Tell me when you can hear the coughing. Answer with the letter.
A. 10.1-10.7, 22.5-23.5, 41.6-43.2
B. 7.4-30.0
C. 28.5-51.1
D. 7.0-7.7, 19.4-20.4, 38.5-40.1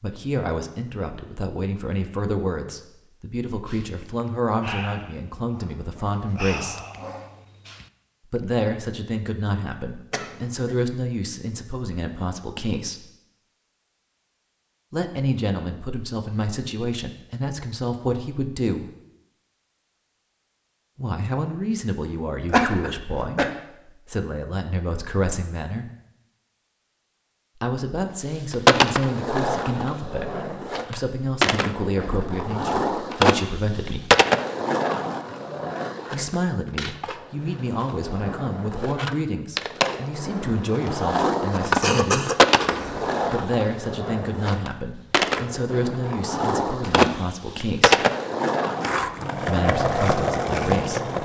A.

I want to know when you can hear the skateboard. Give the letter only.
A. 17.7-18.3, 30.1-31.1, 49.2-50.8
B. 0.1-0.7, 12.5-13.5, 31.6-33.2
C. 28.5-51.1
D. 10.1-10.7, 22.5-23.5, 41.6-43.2
C.